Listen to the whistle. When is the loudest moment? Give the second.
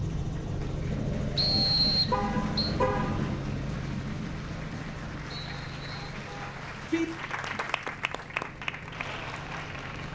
2 s.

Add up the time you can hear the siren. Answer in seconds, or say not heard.
not heard.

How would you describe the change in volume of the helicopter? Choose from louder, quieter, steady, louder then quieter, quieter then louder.
quieter.